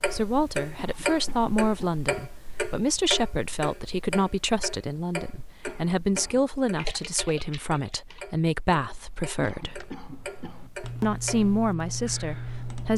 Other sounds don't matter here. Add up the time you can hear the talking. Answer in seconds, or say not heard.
12 s.